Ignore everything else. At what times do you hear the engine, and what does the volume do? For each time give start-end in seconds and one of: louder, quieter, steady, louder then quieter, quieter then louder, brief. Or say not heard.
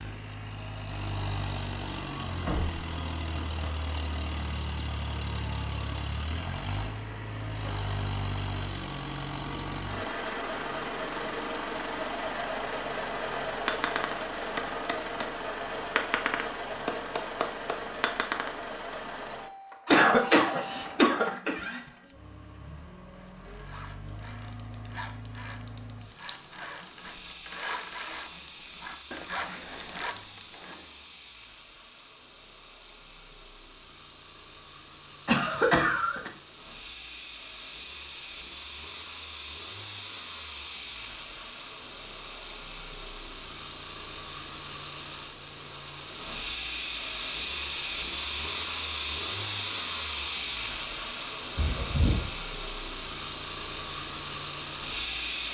0.0-55.4 quieter then louder.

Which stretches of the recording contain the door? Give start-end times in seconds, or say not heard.
2.5-3.5, 51.5-52.3.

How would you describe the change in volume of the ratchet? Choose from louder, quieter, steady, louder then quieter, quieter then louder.
louder.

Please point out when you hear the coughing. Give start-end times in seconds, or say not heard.
19.9-21.6, 35.2-36.3.